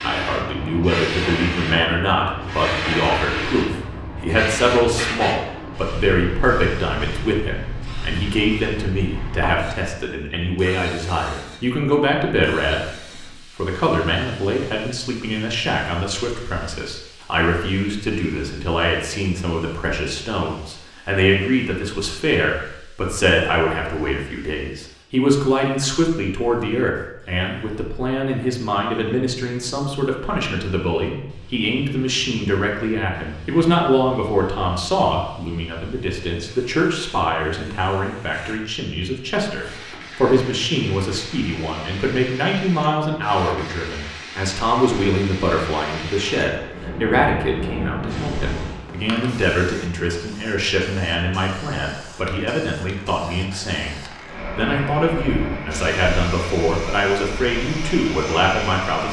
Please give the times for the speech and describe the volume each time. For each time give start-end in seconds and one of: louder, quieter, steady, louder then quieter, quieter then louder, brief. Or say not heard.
0.0-59.0 steady.